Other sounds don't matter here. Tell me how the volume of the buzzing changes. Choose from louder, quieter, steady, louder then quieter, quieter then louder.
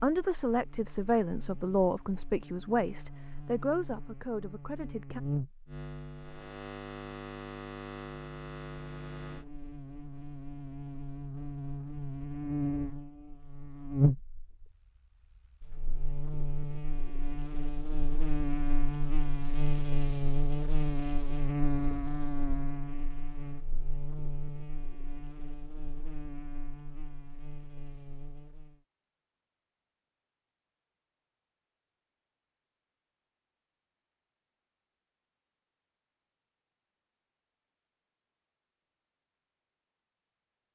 louder then quieter.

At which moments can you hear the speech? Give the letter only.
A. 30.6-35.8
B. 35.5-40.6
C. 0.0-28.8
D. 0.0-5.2
D.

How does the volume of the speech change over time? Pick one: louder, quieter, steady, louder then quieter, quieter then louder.
quieter.